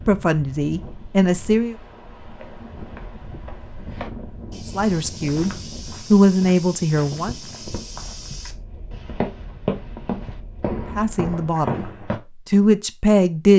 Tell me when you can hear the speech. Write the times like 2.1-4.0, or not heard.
0.1-1.8, 4.7-7.3, 10.8-11.8, 12.4-13.5.